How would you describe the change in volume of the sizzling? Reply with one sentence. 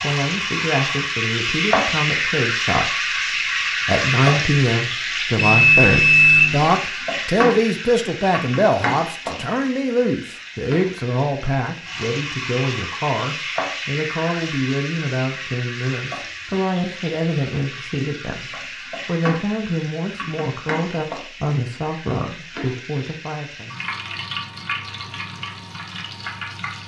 The loudness of the sizzling goes down.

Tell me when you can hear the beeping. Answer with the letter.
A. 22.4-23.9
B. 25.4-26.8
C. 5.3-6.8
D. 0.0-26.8
C.